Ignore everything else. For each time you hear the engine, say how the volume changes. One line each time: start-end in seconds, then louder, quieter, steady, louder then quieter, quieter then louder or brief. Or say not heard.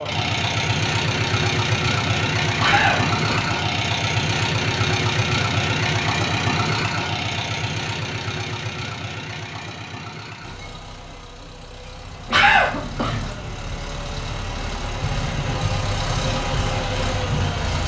0.0-17.8 quieter then louder.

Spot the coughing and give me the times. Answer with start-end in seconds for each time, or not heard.
2.6-3.5, 12.3-13.2.